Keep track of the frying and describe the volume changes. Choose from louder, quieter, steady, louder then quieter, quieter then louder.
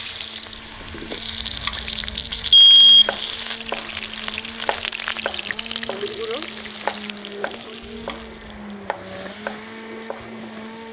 quieter.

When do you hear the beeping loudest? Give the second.
3 s.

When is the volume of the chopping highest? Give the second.
7 s.